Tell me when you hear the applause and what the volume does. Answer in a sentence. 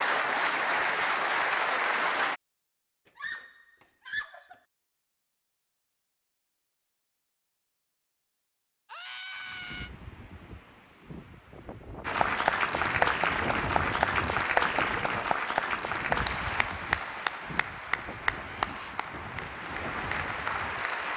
The applause can be heard briefly from 0.0 to 2.4 s; and from 12.1 to 21.1 s, getting quieter.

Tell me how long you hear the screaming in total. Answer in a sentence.
You can hear the screaming for 3 seconds altogether.